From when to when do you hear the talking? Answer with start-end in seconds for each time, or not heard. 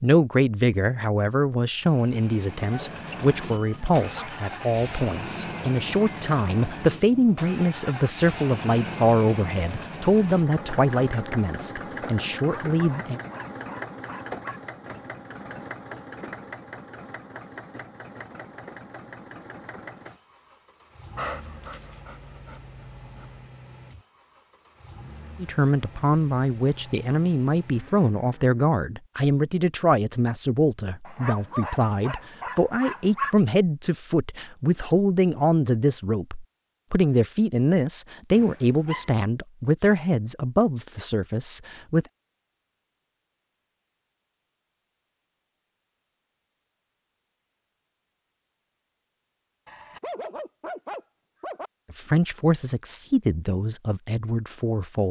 0.0-13.2, 25.4-42.0, 51.9-55.0.